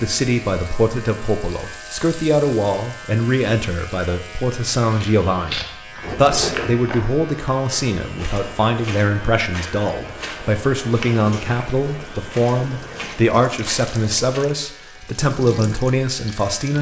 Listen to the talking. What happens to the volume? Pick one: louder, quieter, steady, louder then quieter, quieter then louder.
steady.